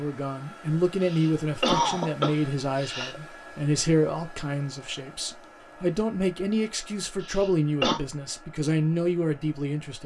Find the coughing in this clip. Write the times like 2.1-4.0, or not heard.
1.0-3.2, 7.2-8.0.